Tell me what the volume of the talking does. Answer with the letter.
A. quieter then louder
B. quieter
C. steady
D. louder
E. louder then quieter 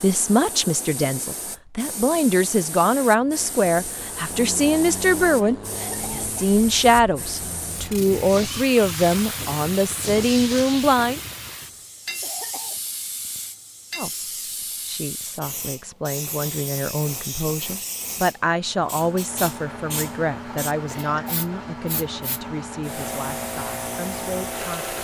B.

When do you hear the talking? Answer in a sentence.
The talking can be heard from 0.0 to 11.2 s and from 13.9 to 25.0 s.